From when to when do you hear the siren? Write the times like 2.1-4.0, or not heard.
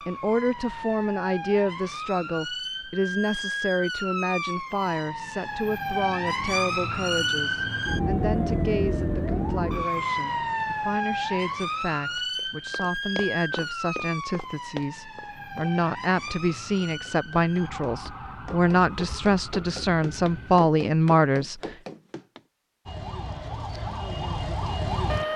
0.0-20.6, 22.9-25.3.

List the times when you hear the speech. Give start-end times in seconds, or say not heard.
0.1-21.6.